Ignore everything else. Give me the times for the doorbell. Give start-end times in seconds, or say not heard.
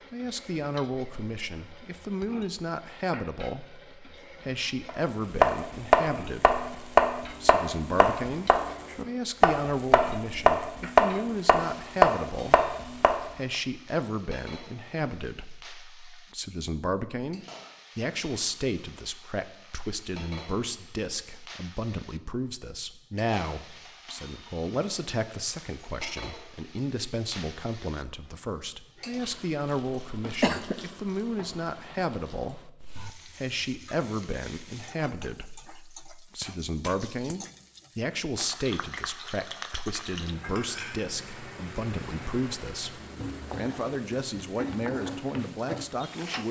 not heard.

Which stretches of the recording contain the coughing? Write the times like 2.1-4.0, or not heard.
29.9-30.8.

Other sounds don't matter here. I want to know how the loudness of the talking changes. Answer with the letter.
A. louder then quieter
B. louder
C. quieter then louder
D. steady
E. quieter
D.